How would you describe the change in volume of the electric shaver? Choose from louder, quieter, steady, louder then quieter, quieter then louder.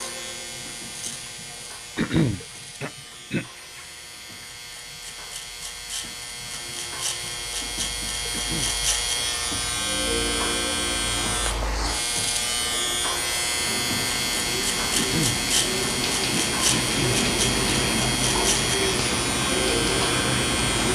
louder.